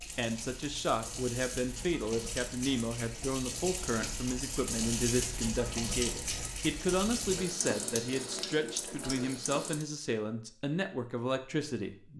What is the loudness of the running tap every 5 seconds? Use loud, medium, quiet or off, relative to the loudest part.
loud, loud, off.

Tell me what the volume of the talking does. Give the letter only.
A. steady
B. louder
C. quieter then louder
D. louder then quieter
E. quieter
A.